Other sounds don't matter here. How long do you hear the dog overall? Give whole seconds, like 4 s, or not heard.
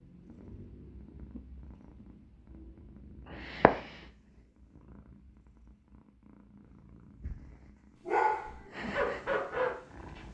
2 s.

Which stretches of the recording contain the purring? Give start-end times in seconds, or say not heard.
0.1-10.2.